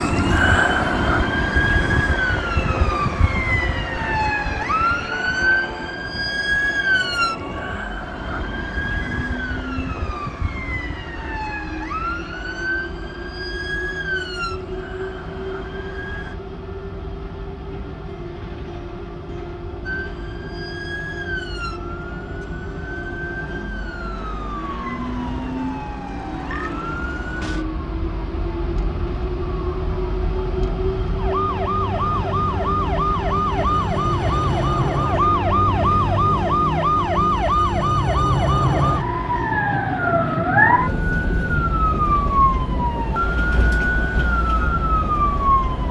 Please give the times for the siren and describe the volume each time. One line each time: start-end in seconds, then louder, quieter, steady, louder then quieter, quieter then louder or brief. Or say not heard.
0.0-16.4 quieter
19.8-45.8 louder.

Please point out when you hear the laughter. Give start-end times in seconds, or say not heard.
not heard.